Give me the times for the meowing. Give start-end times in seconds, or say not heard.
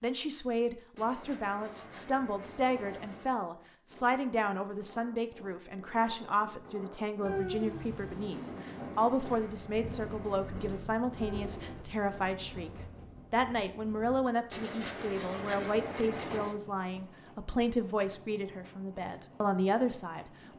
7.2-8.3, 11.2-12.0.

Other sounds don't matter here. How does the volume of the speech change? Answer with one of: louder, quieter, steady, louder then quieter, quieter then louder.
steady.